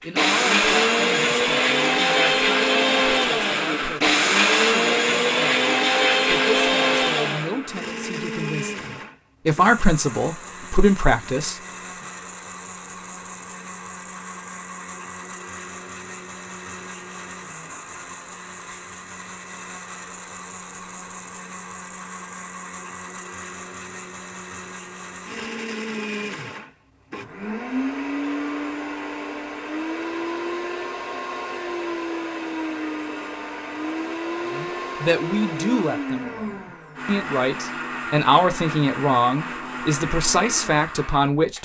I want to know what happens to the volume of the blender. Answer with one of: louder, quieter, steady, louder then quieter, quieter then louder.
quieter then louder.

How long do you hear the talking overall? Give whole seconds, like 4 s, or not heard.
19 s.